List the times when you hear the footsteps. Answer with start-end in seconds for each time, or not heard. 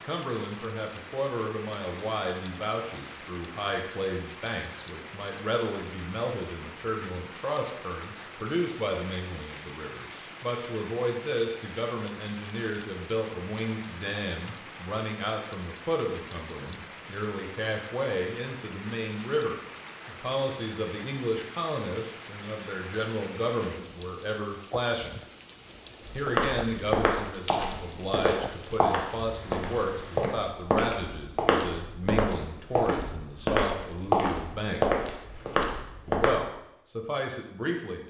26.1-36.3.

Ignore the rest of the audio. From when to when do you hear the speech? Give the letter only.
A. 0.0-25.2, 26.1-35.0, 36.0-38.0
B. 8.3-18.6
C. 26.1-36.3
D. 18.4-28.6
A.